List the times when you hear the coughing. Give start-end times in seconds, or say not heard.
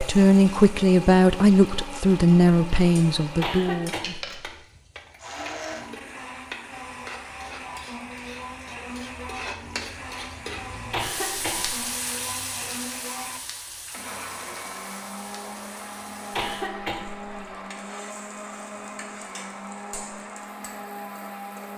3.4-4.4, 10.9-11.8, 16.3-17.4.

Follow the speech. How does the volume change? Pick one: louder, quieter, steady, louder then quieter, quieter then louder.
quieter.